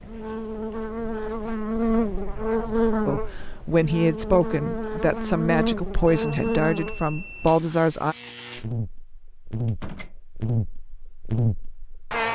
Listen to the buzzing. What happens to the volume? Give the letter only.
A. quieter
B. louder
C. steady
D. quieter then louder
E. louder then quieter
D.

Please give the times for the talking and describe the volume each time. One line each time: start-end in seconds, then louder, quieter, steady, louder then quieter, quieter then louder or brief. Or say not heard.
3.0-8.2 steady.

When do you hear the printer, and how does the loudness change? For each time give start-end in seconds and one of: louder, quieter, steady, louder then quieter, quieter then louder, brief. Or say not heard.
not heard.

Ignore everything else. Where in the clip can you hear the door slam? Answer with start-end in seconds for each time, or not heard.
9.7-10.2.